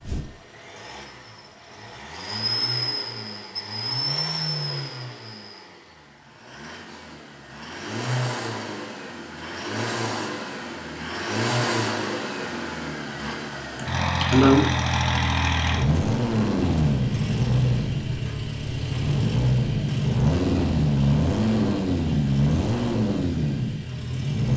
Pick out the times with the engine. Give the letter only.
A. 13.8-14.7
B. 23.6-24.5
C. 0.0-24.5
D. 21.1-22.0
C.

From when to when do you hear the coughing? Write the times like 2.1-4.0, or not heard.
13.8-14.7.